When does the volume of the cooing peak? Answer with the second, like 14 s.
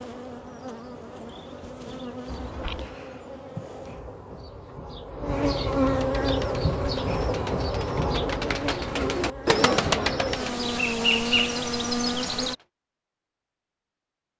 10 s.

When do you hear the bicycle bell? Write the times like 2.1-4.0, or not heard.
2.2-3.0.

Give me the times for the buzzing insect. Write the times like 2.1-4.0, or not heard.
0.0-12.6.